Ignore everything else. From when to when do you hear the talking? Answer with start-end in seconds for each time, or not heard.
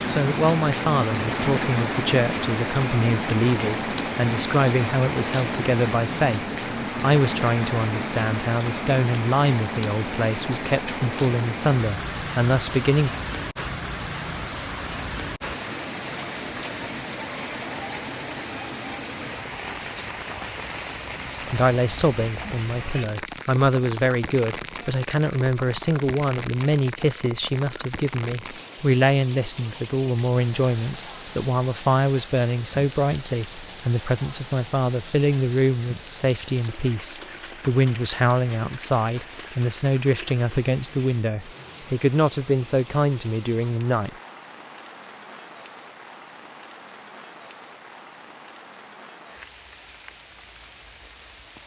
0.1-13.1, 21.5-44.1.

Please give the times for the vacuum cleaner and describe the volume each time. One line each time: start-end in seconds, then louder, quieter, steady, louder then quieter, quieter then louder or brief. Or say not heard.
not heard.